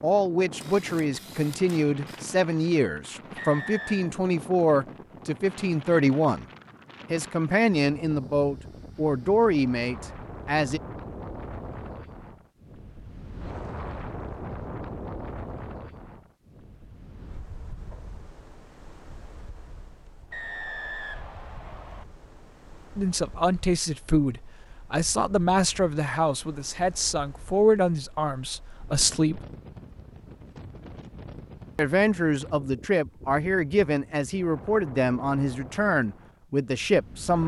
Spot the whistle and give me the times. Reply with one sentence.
The whistle can be heard from 3.4 to 4.1 s and from 20.3 to 22.1 s.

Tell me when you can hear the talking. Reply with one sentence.
You can hear the talking from 0.0 to 6.5 s, from 7.1 to 10.8 s, from 22.9 to 29.4 s and from 31.8 to 37.4 s.